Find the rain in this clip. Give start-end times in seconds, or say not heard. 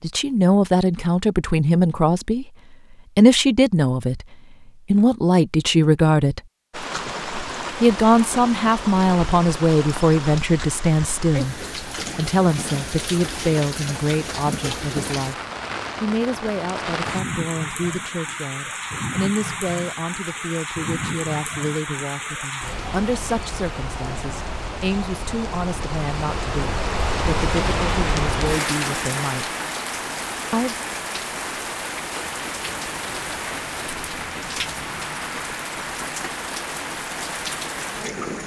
6.7-38.4.